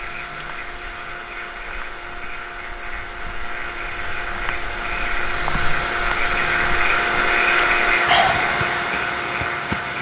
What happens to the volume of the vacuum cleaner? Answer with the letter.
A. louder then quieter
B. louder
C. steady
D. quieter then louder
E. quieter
B.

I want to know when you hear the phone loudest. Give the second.
6 s.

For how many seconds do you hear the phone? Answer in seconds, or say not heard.
3 s.